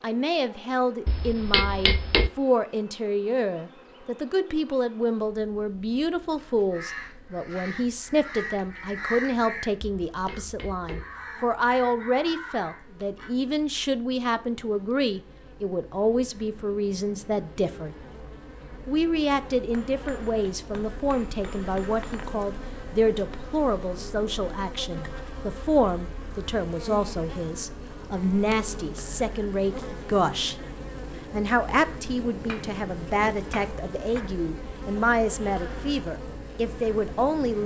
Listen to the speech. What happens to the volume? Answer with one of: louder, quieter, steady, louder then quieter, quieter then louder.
steady.